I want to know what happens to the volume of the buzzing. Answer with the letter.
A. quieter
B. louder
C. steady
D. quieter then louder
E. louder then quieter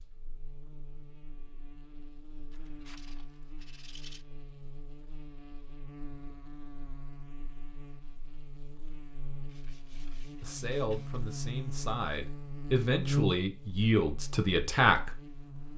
B.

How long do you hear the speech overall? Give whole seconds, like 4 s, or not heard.
5 s.